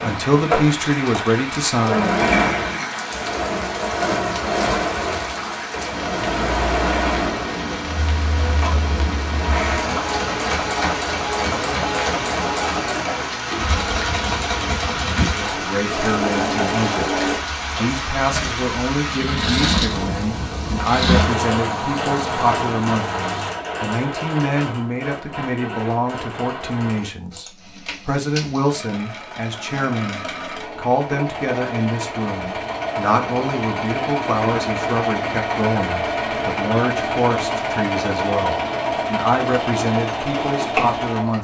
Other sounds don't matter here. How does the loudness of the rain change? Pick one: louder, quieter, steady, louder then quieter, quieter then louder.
steady.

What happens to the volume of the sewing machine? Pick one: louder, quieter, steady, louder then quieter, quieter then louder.
quieter then louder.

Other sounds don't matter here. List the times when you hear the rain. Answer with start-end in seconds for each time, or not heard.
0.0-23.6.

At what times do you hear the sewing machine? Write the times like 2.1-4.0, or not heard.
0.0-41.3.